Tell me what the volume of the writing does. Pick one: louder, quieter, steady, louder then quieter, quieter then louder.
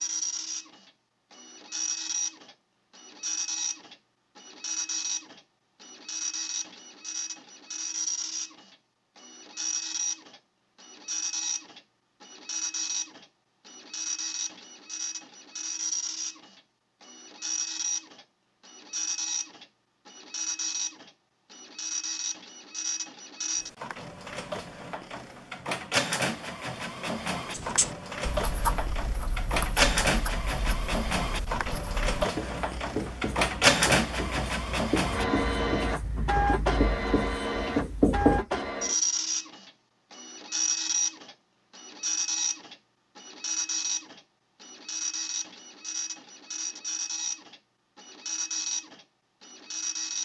quieter then louder.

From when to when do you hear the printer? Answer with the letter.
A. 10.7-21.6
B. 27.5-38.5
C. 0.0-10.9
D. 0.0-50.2
D.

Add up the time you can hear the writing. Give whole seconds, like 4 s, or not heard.
11 s.